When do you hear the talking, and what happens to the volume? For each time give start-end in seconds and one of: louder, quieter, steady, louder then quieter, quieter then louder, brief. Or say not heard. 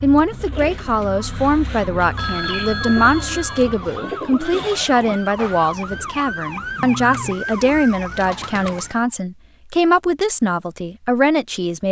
0.0-11.8 steady.